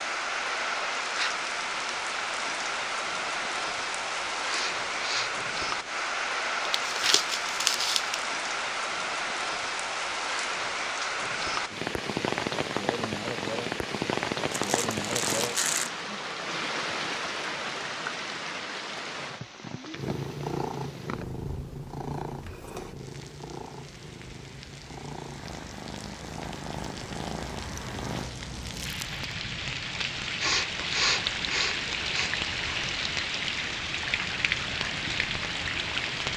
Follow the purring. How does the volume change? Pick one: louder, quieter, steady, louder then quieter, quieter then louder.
quieter then louder.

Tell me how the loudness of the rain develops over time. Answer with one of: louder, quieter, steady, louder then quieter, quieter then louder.
quieter then louder.